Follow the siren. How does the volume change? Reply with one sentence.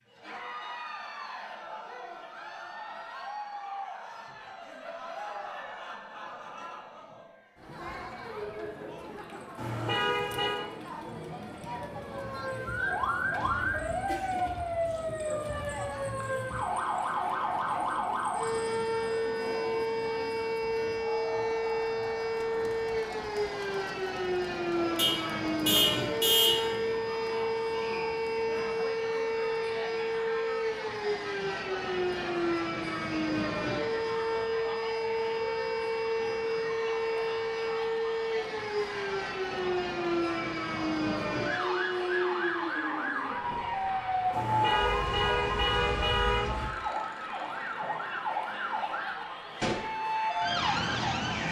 The loudness of the siren stays about the same.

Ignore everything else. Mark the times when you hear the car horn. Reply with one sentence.
The car horn can be heard from 9.6 to 10.6 s, from 24.9 to 26.7 s and from 44.3 to 46.5 s.